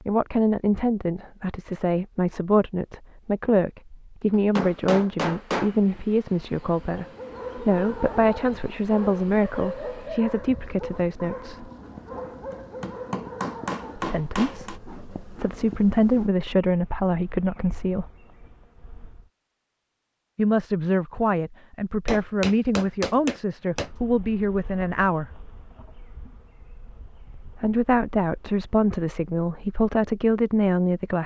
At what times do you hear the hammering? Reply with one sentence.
The hammering can be heard from 4.3 to 5.8 s, from 12.5 to 14.8 s and from 22.1 to 23.9 s.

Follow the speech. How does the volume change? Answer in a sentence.
The loudness of the speech stays about the same.